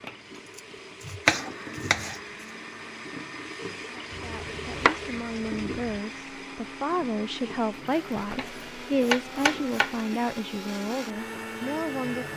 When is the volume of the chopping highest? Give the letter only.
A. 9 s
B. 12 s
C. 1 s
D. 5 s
C.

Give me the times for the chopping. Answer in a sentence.
The chopping can be heard from 0.6 to 2.2 s, from 4.1 to 6.0 s and from 8.3 to 9.9 s.